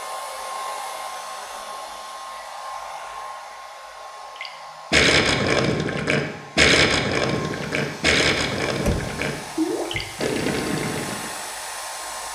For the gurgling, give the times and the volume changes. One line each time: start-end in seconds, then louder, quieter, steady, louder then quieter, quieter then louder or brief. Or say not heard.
4.4-11.3 quieter.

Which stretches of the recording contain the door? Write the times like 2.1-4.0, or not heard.
8.8-9.2.